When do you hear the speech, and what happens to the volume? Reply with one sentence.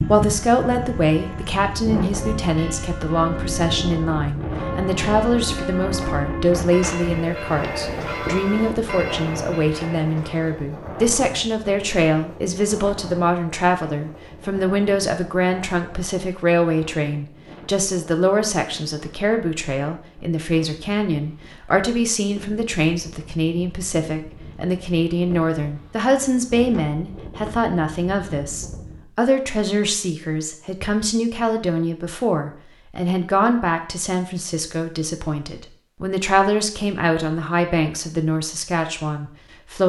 The speech can be heard from 0.1 to 39.8 s, at a steady volume.